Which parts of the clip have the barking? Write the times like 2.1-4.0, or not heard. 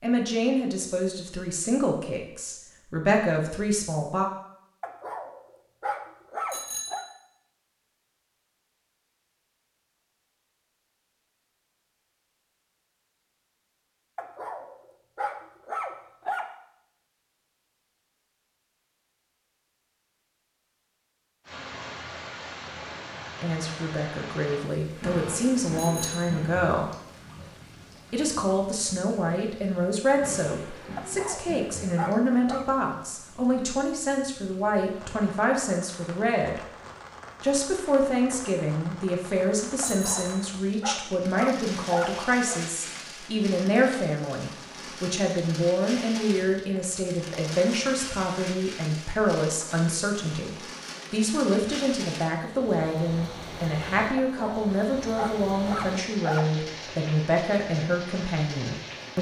4.8-7.0, 14.2-16.4, 30.9-32.6, 39.8-42.6, 54.1-56.5.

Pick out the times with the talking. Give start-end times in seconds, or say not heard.
0.0-4.2, 23.4-26.9, 28.1-36.6, 37.4-59.1.